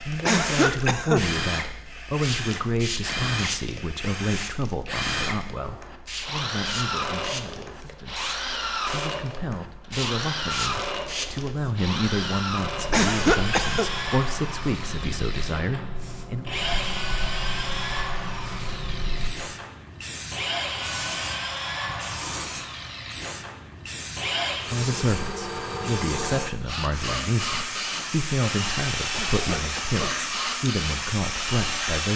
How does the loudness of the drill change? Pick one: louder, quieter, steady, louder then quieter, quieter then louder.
steady.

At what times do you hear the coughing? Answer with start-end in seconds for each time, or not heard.
0.2-1.2, 12.9-13.8, 29.1-30.0.